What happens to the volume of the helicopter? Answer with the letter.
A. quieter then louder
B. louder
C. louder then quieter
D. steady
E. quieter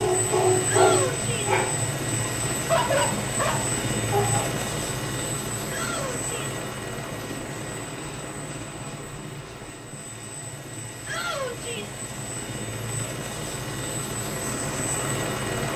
A.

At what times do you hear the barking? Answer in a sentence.
The barking can be heard from 0.0 to 4.5 s.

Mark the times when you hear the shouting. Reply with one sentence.
The shouting can be heard from 0.7 to 1.6 s, from 5.7 to 6.5 s and from 11.1 to 12.0 s.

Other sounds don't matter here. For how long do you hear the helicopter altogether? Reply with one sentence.
You can hear the helicopter for 16 seconds altogether.